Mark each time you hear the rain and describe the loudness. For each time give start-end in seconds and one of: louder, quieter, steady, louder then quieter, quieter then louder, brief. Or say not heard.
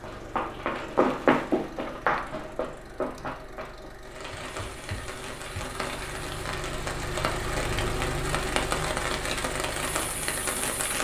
4.0-10.9 louder.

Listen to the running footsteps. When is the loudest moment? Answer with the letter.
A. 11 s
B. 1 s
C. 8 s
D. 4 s
B.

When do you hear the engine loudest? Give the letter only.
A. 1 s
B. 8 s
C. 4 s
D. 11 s
B.